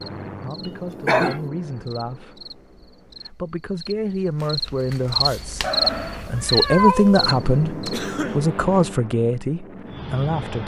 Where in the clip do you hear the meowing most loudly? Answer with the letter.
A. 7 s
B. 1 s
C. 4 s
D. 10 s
A.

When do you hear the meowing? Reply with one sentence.
You can hear the meowing from 5.6 to 7.3 s.